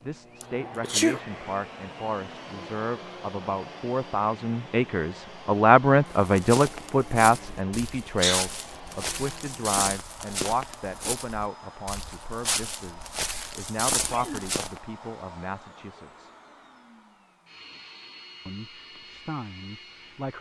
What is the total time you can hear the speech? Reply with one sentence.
The speech can be heard for 18 seconds in total.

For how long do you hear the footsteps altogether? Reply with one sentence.
The footsteps can be heard for 9 seconds in total.